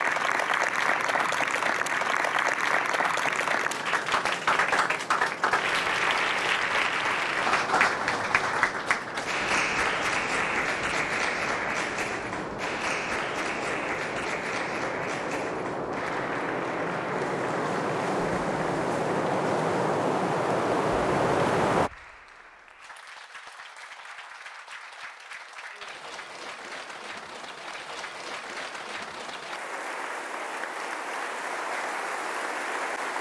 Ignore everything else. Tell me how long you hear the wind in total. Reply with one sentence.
The wind can be heard for 22 seconds in total.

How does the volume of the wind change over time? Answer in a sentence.
The loudness of the wind goes up.